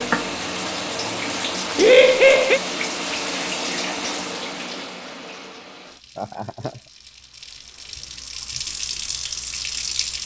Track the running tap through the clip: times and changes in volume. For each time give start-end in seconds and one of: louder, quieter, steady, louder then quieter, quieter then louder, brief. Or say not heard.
0.0-10.2 quieter then louder.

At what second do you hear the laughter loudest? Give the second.
2 s.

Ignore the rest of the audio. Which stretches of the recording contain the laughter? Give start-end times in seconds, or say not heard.
1.8-2.6, 6.2-6.8.